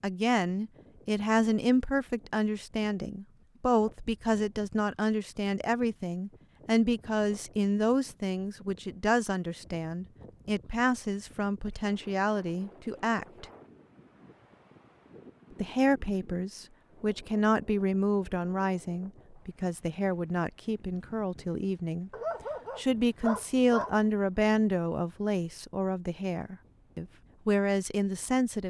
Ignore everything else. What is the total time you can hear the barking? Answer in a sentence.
You can hear the barking for 2 seconds altogether.